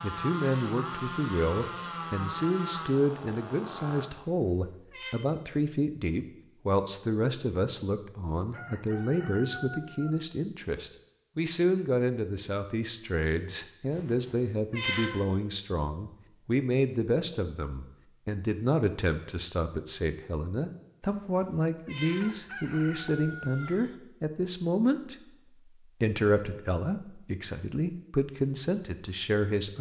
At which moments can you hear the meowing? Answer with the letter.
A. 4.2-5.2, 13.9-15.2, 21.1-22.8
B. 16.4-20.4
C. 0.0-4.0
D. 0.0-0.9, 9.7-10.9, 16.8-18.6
A.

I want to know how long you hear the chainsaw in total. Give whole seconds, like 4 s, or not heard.
4 s.